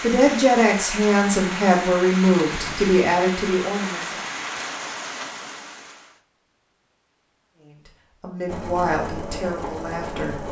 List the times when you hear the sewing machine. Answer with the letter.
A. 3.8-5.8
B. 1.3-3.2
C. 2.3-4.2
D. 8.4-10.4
D.